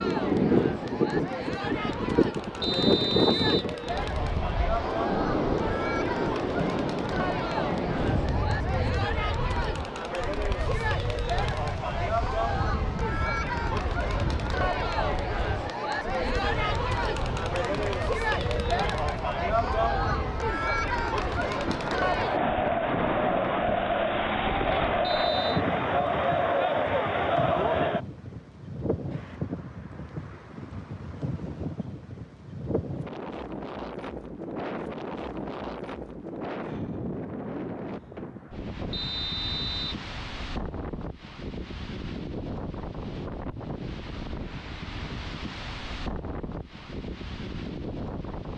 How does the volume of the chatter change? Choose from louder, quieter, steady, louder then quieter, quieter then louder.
louder.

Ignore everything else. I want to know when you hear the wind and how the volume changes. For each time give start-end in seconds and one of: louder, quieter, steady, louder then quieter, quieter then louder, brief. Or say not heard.
0.0-48.5 quieter.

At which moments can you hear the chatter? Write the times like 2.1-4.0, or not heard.
0.0-28.0.